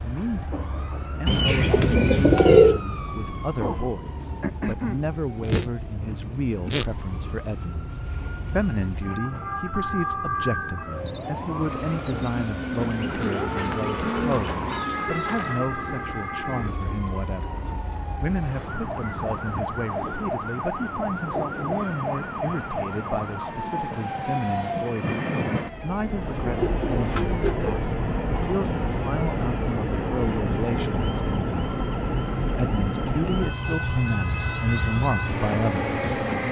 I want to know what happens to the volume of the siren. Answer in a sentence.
The volume of the siren goes down.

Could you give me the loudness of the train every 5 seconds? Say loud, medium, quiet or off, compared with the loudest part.
quiet, quiet, quiet, quiet, medium, loud, loud, loud.